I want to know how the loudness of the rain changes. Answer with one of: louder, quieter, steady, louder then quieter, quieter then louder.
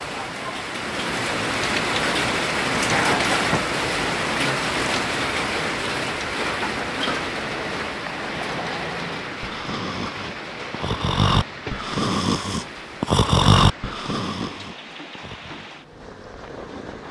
quieter.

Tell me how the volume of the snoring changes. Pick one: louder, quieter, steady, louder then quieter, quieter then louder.
louder then quieter.